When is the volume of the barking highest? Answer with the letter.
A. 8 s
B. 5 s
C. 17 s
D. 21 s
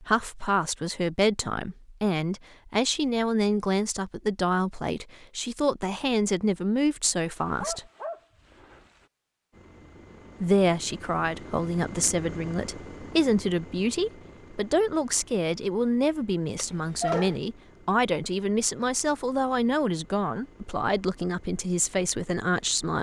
C.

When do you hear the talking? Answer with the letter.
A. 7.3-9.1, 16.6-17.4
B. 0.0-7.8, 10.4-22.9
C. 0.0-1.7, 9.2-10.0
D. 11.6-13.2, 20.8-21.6
B.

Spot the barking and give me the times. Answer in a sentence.
The barking can be heard from 7.3 to 9.1 s and from 16.6 to 17.4 s.